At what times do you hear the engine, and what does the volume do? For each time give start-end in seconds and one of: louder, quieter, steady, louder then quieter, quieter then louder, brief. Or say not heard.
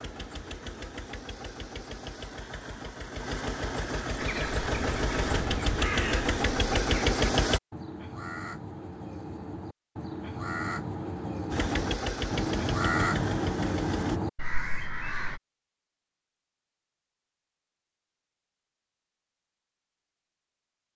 0.0-7.6 louder
11.5-14.2 brief.